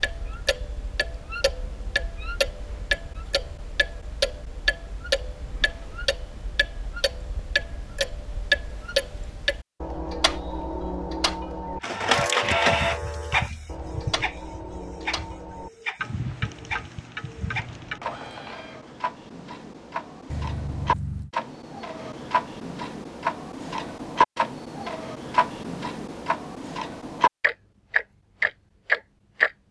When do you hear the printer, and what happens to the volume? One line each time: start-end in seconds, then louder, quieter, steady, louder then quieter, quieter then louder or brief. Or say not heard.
11.8-18.9 quieter.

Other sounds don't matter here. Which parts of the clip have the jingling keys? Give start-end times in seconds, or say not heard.
20.3-21.3.